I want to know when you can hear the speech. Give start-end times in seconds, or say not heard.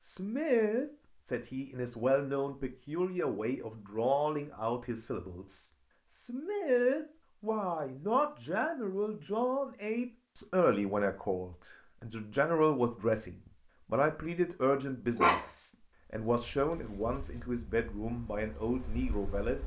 0.0-19.6.